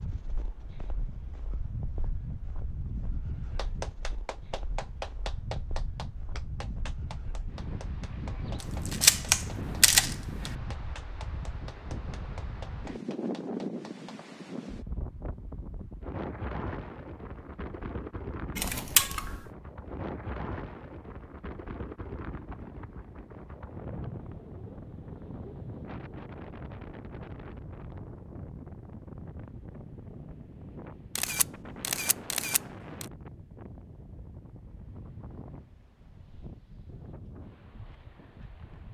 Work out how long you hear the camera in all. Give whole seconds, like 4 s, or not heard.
5 s.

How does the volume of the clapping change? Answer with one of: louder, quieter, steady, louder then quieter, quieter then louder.
quieter.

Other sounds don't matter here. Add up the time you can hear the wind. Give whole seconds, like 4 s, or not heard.
39 s.